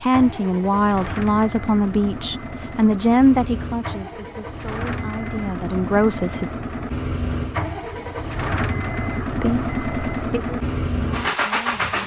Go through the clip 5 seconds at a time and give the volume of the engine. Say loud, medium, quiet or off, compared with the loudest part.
medium, loud, loud.